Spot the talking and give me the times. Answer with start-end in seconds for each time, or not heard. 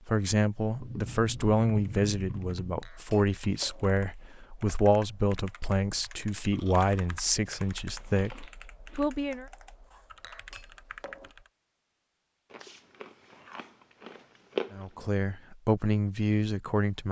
0.1-9.4, 14.7-17.0.